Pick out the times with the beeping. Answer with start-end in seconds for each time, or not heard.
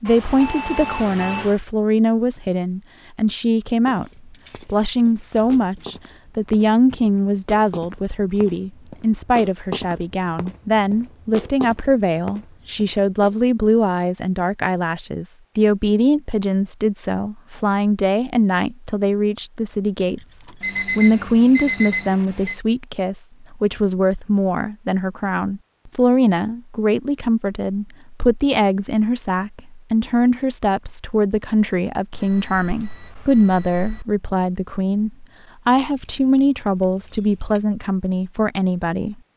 0.1-1.6, 20.6-22.6, 32.1-34.0.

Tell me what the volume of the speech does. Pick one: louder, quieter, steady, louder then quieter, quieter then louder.
steady.